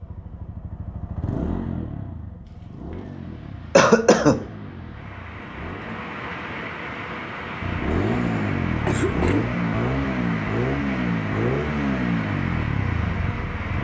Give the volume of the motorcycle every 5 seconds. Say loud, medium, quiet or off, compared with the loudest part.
medium, loud, loud.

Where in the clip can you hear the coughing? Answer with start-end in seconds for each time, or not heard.
3.8-4.4, 7.9-9.5.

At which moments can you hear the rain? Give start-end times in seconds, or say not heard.
2.4-13.7.